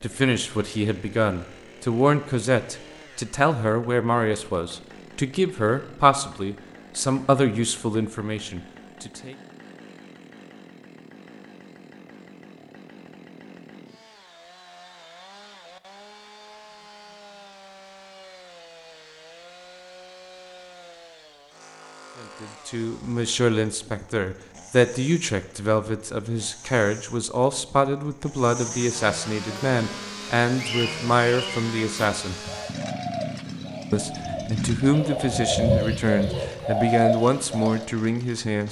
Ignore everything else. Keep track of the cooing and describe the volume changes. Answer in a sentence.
The loudness of the cooing goes up.